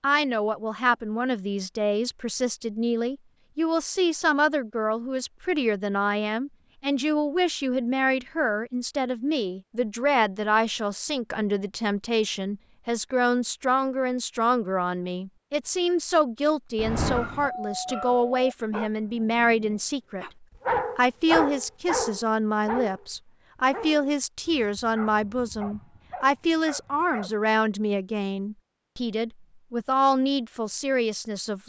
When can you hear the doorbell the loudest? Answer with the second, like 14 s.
17 s.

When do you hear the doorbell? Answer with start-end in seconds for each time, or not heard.
16.8-18.6.